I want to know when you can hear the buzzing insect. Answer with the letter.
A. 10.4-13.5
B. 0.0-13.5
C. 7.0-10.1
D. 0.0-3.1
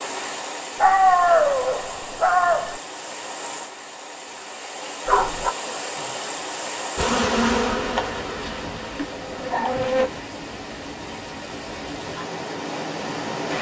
C.